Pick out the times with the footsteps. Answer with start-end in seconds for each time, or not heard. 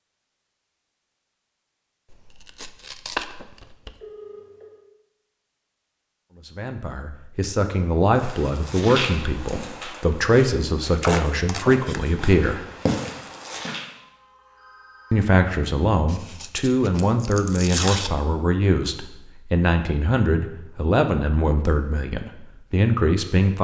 8.2-13.8.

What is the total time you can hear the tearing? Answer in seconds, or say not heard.
5 s.